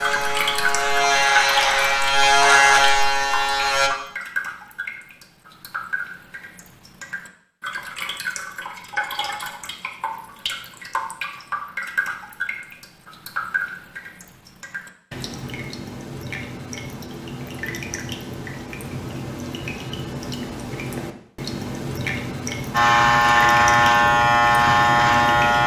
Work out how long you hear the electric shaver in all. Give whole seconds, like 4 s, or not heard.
7 s.